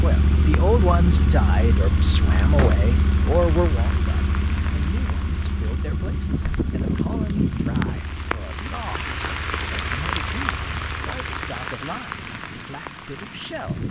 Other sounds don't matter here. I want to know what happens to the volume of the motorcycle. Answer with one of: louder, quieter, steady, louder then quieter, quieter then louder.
quieter.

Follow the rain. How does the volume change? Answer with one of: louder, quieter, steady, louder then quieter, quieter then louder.
louder then quieter.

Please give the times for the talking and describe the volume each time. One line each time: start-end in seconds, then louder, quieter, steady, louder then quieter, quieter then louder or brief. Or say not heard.
0.0-13.8 quieter.